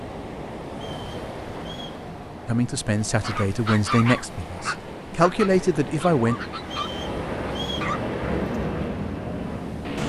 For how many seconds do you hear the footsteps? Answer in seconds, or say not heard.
not heard.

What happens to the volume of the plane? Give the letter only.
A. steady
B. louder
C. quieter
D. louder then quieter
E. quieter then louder
B.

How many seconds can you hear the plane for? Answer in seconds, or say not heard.
10 s.